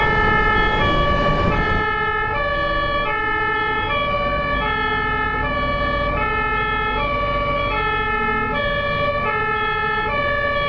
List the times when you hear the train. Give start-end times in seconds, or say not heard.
0.0-1.9.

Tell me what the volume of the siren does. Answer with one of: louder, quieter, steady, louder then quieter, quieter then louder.
steady.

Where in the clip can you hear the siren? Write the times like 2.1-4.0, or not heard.
0.0-10.6.